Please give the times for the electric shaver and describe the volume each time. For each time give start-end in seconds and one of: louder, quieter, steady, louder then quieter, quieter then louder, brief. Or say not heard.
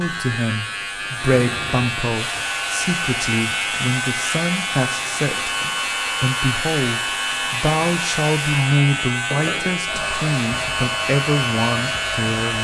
0.0-12.5 steady.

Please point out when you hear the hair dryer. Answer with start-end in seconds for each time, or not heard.
2.1-12.5.